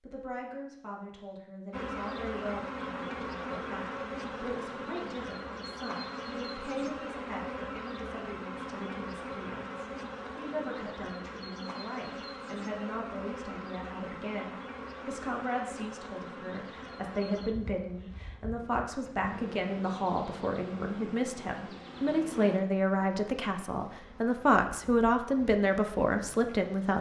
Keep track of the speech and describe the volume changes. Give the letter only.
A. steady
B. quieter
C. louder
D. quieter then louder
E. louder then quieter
C.